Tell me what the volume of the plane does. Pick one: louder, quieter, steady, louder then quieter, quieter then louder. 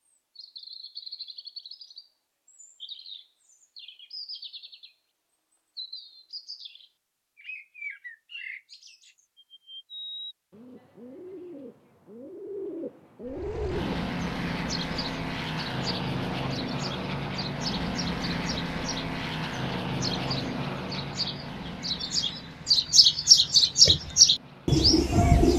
quieter.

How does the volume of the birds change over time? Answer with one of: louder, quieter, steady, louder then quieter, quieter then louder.
louder.